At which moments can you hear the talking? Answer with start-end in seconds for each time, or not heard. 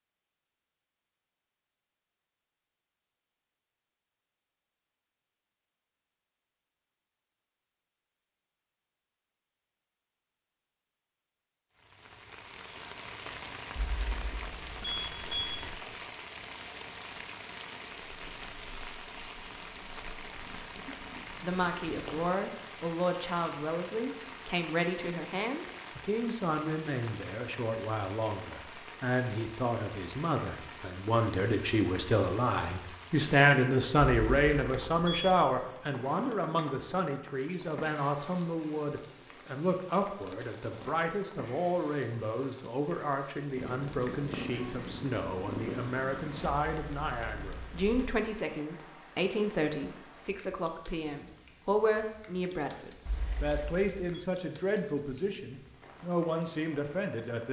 20.9-57.4.